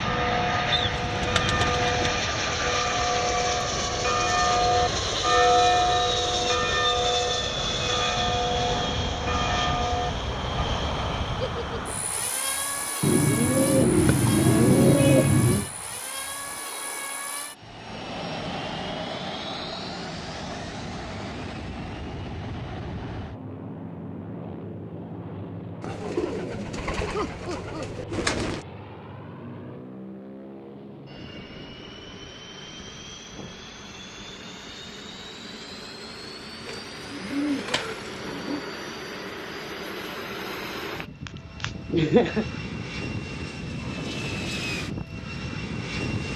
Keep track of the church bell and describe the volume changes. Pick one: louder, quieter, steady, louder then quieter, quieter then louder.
louder then quieter.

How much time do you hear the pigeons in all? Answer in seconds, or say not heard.
9 s.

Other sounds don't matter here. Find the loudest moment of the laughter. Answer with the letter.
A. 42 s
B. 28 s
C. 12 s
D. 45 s
A.